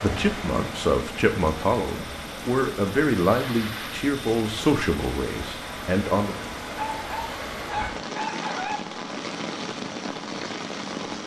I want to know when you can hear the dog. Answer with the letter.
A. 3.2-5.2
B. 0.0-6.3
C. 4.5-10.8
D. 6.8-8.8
D.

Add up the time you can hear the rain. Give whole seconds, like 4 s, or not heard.
11 s.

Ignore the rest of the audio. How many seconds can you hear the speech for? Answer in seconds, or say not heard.
6 s.